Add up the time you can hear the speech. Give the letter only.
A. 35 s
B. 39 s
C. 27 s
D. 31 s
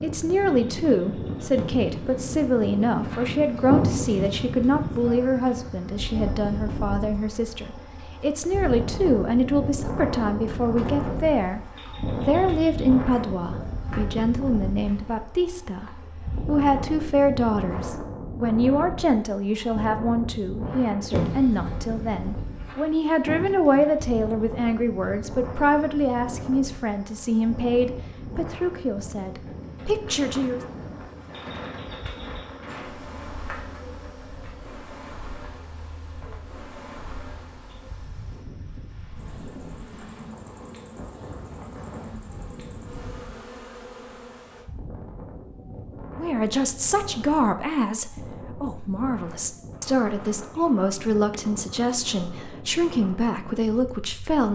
B.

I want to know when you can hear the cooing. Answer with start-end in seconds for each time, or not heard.
not heard.